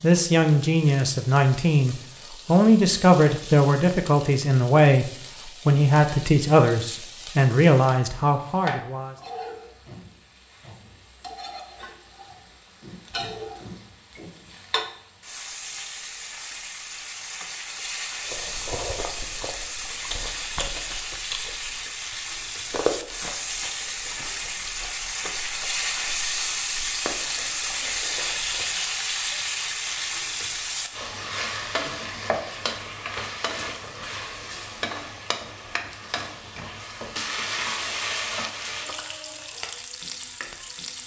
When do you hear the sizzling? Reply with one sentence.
The sizzling can be heard from 0.0 to 41.0 s.